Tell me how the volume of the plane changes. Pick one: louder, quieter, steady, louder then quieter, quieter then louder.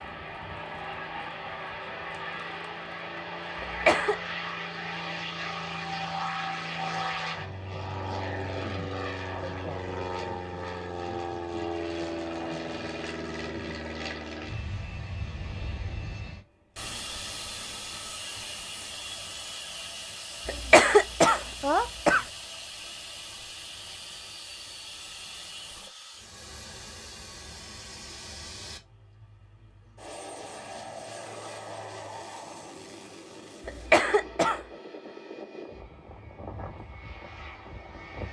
quieter.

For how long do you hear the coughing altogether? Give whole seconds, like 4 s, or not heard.
3 s.